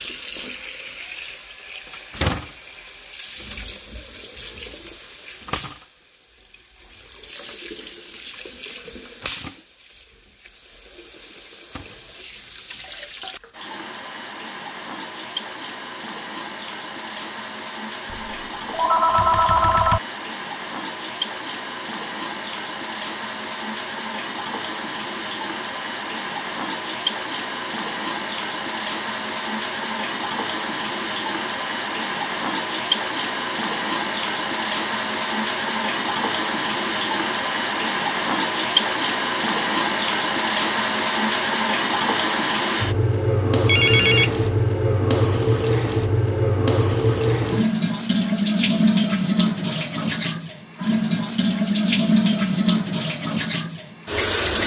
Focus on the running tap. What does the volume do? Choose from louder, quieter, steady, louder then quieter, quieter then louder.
louder.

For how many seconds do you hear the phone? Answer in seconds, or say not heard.
3 s.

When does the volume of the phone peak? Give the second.
44 s.